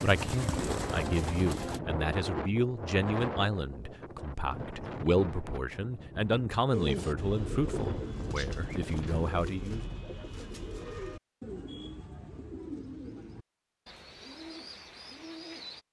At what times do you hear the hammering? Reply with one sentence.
You can't hear the hammering here.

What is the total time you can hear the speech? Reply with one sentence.
You can hear the speech for 10 seconds altogether.